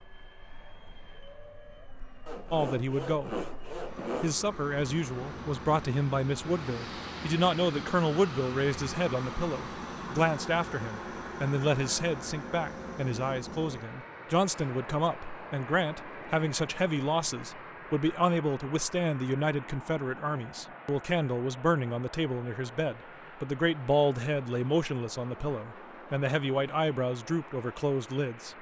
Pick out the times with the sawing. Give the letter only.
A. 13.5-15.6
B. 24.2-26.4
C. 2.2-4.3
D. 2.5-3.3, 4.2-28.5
C.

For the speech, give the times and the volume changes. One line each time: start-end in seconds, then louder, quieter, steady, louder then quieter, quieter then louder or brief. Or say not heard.
2.5-3.3 brief
4.2-28.5 steady.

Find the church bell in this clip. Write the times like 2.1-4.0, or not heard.
not heard.